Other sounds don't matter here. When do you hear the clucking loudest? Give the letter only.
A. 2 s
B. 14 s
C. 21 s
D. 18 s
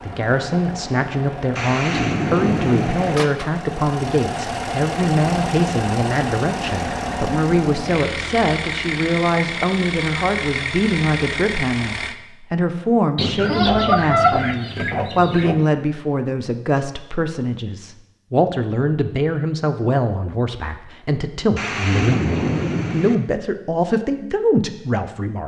B.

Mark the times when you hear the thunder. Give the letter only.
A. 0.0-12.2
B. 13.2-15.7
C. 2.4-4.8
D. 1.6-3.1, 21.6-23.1
D.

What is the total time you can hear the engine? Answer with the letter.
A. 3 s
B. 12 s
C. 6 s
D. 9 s
B.